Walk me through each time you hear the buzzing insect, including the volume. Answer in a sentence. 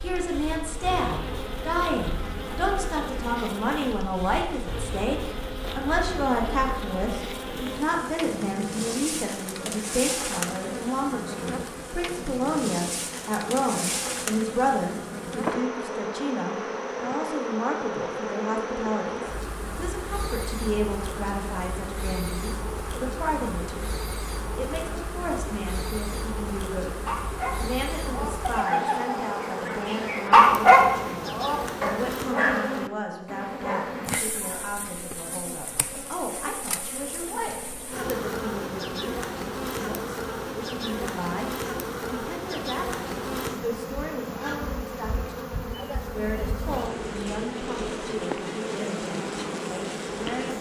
The buzzing insect can be heard from 0.0 to 50.5 s, at a steady volume.